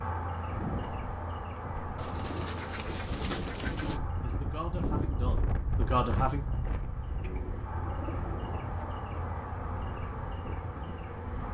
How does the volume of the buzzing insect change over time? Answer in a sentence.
The loudness of the buzzing insect goes down, then up.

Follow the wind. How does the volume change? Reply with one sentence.
The loudness of the wind goes up, then down.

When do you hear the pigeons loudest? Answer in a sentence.
The volume of the pigeons peaks at 3 seconds.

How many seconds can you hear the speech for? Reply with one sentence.
You can hear the speech for 2 seconds altogether.